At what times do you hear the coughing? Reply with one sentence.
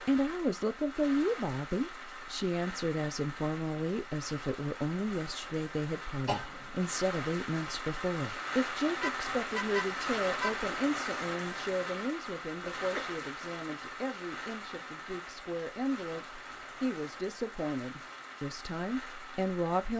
You can hear the coughing from 6.2 to 6.9 s and from 12.6 to 13.2 s.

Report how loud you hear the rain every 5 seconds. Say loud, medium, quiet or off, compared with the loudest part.
medium, loud, loud, medium.